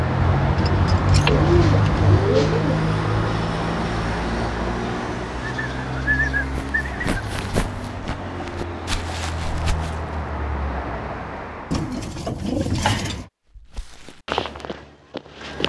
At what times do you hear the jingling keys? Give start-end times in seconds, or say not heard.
0.2-2.2, 11.9-13.3.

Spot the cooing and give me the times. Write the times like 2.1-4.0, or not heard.
1.2-2.8, 5.4-7.6, 11.7-13.2.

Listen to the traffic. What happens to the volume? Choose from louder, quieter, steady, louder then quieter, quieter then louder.
quieter.